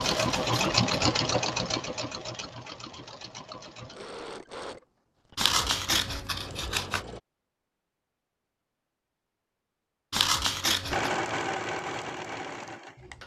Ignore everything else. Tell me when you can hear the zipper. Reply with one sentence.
The zipper can't be heard in this clip.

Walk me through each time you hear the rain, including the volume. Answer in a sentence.
The rain can't be heard in this clip.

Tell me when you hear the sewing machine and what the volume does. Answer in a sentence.
The sewing machine can be heard from 0.0 to 7.2 s, getting quieter; and briefly from 10.9 to 13.2 s.